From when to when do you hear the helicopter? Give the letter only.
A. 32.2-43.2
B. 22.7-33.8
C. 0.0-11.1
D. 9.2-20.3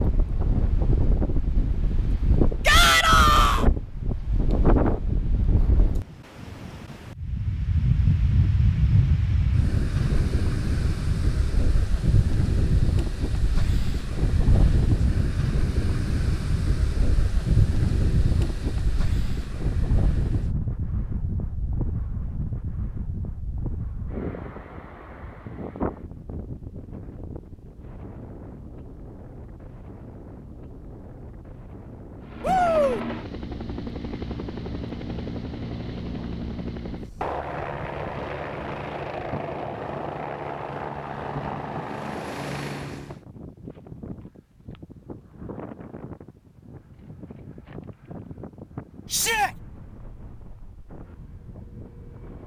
A.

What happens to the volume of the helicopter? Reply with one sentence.
The volume of the helicopter stays about the same.